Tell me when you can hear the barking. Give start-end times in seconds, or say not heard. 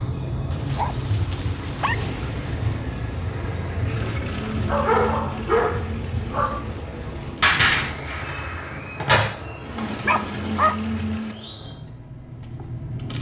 0.5-2.7, 4.5-6.7, 10.1-10.9.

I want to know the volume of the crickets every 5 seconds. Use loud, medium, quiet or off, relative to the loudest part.
loud, medium, medium.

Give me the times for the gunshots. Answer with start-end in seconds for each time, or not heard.
7.4-9.3.